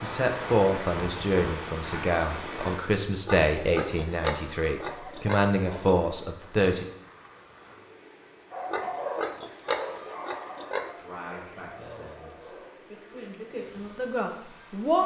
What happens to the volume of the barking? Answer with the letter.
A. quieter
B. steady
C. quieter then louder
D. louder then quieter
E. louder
A.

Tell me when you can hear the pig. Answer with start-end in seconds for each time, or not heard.
3.2-6.0, 8.7-10.9.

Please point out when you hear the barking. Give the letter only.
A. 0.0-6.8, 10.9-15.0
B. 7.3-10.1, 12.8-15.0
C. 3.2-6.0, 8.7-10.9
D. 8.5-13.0
D.